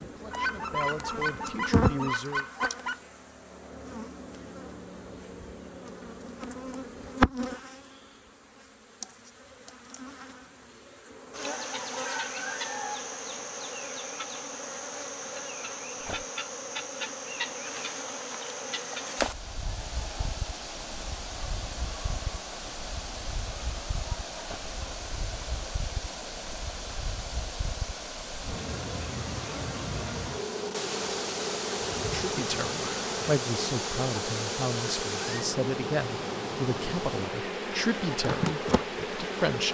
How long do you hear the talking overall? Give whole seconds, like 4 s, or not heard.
10 s.